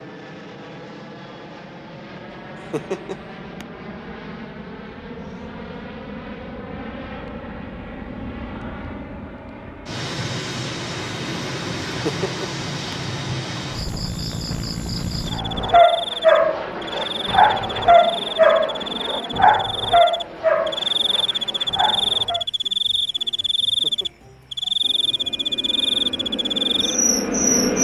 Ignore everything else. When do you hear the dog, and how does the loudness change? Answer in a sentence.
The dog can be heard from 15.3 to 22.4 s, getting quieter.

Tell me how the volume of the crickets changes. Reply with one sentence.
The volume of the crickets goes up.